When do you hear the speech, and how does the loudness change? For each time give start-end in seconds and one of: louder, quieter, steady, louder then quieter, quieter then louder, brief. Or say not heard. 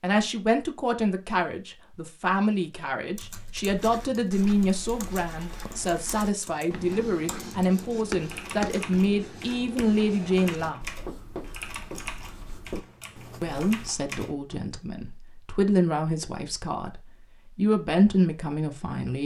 0.0-10.8 steady
13.4-19.2 louder.